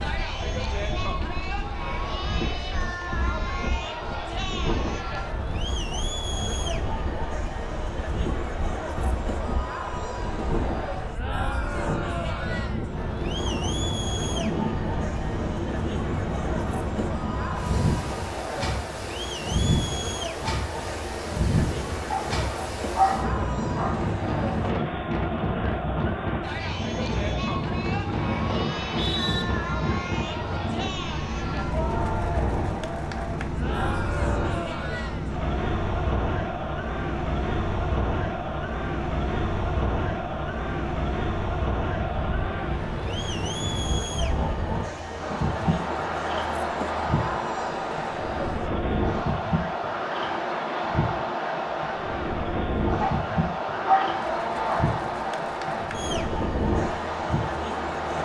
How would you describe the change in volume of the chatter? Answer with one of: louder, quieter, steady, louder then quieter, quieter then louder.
steady.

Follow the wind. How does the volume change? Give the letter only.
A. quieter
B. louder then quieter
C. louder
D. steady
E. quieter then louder
C.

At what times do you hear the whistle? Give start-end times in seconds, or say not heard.
28.7-29.4.